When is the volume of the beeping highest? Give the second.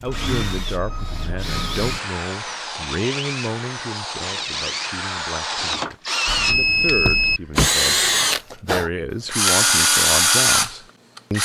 7 s.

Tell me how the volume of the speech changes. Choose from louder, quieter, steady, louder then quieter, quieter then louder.
quieter then louder.